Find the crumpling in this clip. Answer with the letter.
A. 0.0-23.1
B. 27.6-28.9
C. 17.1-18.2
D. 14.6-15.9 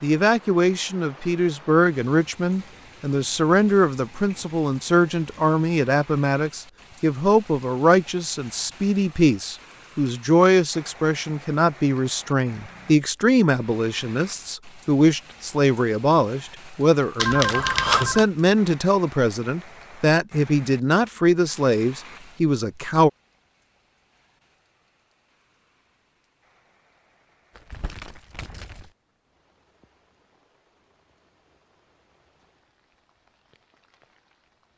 B.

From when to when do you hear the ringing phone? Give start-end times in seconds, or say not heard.
17.1-18.2.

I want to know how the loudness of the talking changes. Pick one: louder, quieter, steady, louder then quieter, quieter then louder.
steady.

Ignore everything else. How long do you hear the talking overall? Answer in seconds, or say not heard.
23 s.